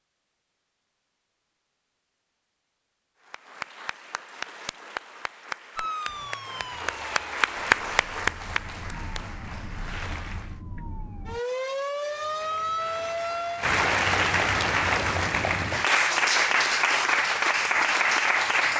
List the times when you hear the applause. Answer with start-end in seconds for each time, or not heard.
3.2-10.6, 12.1-18.7.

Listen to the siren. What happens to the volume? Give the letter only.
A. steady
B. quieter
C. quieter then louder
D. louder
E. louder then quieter
C.